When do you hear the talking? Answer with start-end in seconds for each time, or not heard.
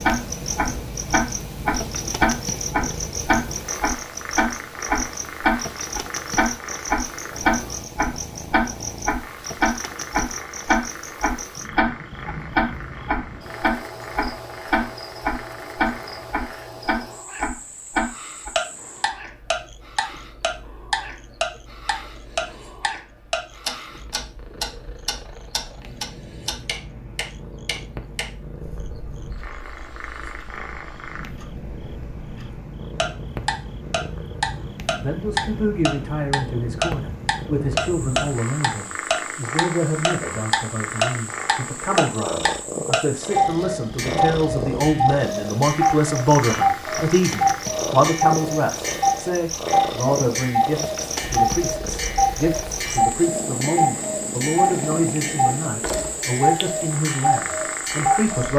35.0-58.5.